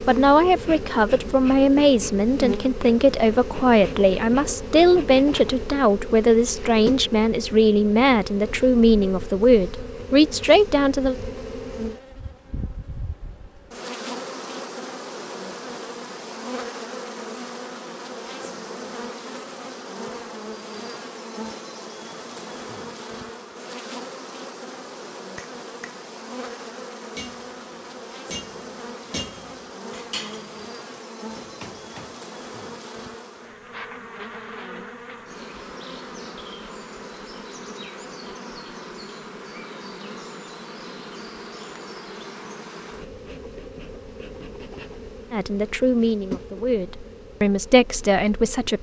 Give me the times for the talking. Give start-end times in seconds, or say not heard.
0.0-11.2, 45.3-48.7.